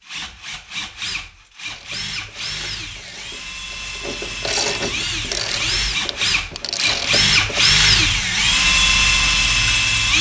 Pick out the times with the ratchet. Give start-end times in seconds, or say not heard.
1.6-7.7.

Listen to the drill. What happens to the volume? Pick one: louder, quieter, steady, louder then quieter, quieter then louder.
louder.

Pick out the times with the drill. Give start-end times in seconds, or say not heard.
0.0-10.1.